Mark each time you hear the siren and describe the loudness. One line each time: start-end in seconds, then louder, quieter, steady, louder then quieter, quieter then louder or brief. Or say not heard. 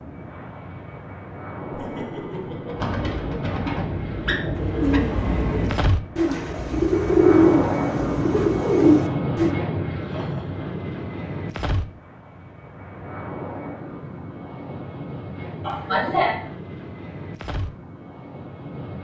not heard.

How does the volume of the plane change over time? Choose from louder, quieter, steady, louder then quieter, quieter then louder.
louder then quieter.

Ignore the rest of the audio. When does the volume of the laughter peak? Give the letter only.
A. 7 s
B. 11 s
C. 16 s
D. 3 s
C.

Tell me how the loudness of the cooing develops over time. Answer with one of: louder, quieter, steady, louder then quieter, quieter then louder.
louder.